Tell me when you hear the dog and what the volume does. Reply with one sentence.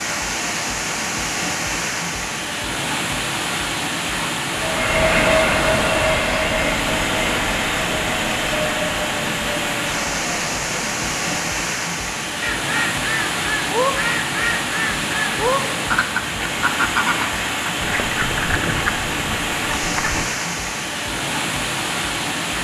You can't hear the dog here.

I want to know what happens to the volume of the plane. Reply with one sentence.
The volume of the plane goes down.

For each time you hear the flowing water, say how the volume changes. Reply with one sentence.
The flowing water can be heard from 0.0 to 22.5 s, at a steady volume.